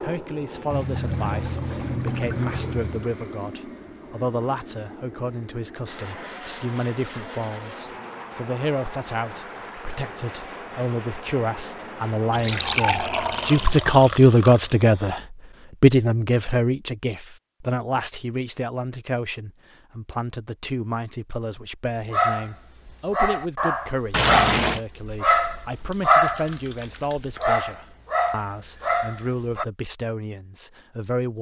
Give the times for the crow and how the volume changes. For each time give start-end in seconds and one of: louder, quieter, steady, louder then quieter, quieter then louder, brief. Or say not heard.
not heard.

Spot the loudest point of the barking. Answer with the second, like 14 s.
26 s.